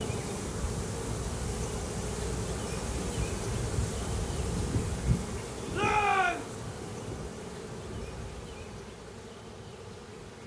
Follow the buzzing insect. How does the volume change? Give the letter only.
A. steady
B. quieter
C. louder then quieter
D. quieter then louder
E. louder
B.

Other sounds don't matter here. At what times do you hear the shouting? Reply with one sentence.
You can hear the shouting from 5.7 to 6.5 s.